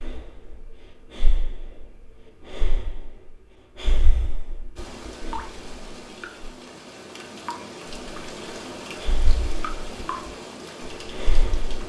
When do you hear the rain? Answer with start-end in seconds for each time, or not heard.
4.8-11.8.